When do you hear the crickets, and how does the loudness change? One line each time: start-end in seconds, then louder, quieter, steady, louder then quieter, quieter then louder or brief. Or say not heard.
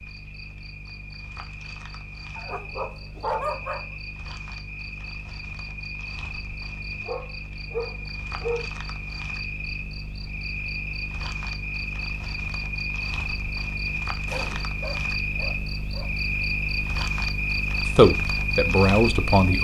0.0-19.5 louder.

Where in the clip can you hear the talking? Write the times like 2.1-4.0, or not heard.
17.9-19.5.